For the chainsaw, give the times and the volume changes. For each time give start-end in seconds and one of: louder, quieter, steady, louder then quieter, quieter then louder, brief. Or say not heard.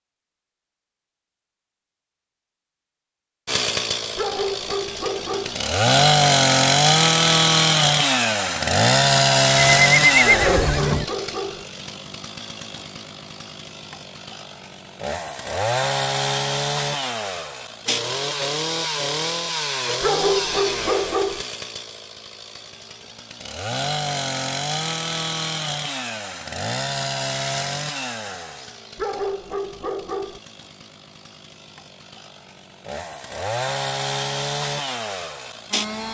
3.5-36.0 quieter.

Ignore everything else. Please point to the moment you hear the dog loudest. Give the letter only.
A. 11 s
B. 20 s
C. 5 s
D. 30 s
B.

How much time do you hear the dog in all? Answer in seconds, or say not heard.
6 s.